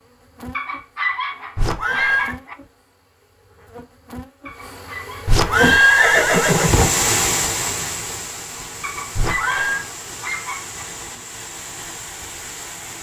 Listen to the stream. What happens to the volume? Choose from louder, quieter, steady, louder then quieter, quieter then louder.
quieter.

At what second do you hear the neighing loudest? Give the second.
6 s.